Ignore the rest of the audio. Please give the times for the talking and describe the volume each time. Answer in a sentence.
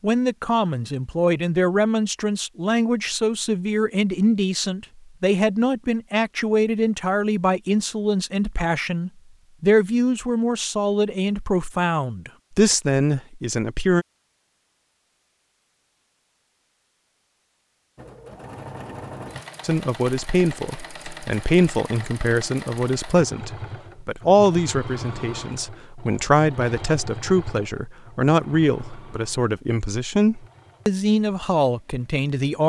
The talking can be heard from 0.0 to 14.1 s, at a steady volume; and from 19.6 to 32.6 s, at a steady volume.